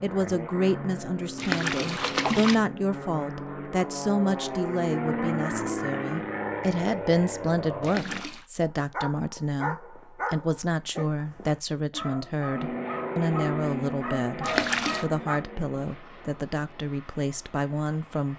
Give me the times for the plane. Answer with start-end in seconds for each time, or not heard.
0.0-8.2, 12.6-18.3.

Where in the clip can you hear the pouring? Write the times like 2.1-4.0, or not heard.
1.4-2.5, 7.8-8.4, 14.4-15.1.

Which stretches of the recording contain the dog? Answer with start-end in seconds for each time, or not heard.
8.7-15.4.